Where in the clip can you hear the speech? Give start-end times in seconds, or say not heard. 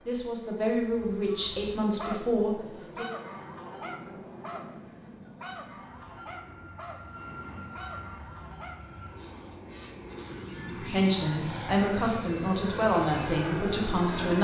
0.1-3.0, 10.7-14.3.